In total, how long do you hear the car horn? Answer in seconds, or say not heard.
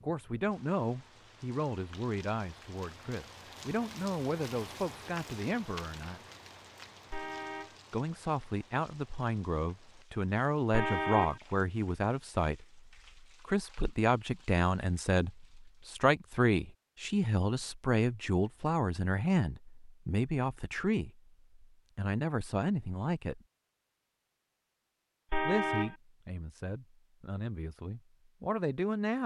2 s.